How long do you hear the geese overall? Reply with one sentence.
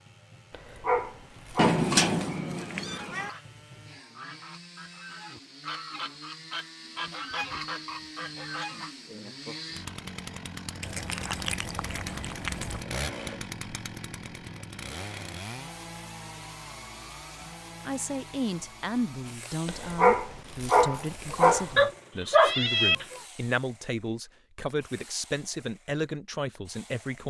The geese can be heard for 6 seconds in total.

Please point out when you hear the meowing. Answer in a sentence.
You can hear the meowing from 1.6 to 3.3 s, from 10.8 to 12.8 s and from 21.8 to 23.2 s.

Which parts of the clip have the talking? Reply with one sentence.
The talking can be heard from 17.9 to 27.2 s.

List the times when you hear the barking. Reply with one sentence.
The barking can be heard from 0.5 to 1.9 s and from 19.6 to 21.8 s.